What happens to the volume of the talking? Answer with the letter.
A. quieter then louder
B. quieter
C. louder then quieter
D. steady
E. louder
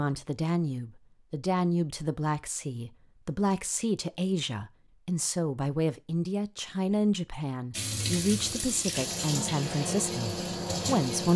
D.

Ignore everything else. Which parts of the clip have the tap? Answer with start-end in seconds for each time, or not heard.
7.7-11.3.